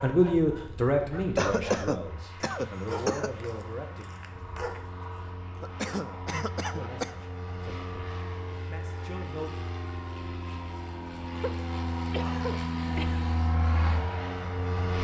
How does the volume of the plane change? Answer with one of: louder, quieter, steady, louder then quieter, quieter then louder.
louder.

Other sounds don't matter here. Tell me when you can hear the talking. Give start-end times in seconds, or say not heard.
0.0-4.1, 6.7-9.6.